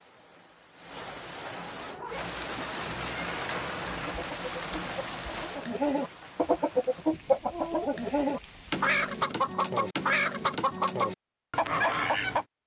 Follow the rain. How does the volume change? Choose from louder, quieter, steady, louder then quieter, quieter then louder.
louder then quieter.